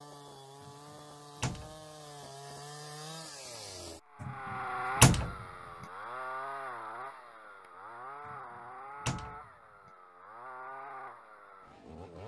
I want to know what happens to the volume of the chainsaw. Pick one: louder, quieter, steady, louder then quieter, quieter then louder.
louder then quieter.